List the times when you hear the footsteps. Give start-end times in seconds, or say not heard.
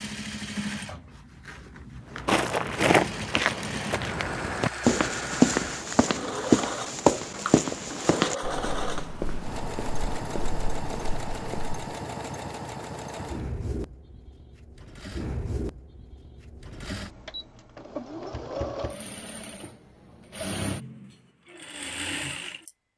2.2-11.8.